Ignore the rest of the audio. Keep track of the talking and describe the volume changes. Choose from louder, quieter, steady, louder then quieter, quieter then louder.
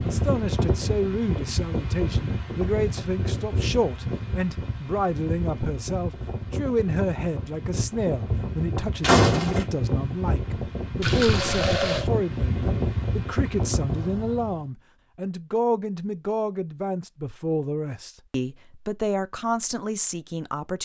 steady.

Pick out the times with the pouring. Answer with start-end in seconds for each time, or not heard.
11.0-12.1.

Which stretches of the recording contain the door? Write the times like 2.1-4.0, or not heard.
9.0-9.7.